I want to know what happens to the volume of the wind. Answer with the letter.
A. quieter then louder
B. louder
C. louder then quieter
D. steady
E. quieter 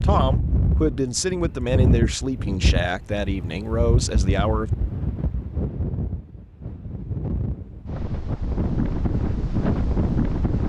A.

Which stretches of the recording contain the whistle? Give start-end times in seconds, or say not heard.
not heard.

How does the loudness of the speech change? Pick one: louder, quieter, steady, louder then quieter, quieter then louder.
steady.